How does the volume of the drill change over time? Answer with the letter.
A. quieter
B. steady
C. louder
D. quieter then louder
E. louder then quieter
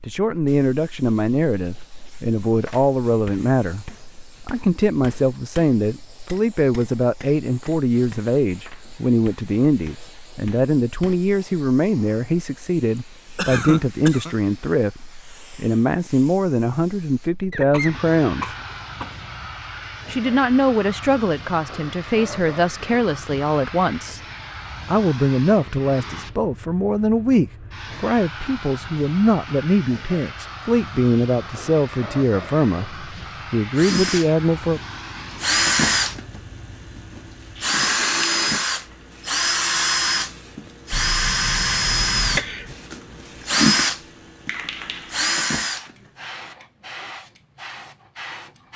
B.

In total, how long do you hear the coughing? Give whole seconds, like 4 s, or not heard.
5 s.